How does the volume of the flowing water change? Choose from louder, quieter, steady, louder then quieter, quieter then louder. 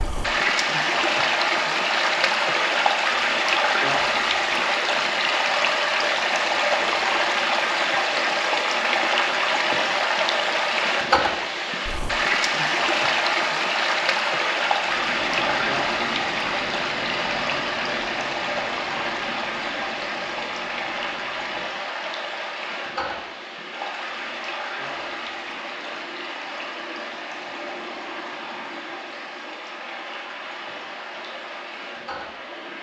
quieter.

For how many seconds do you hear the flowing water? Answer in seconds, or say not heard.
33 s.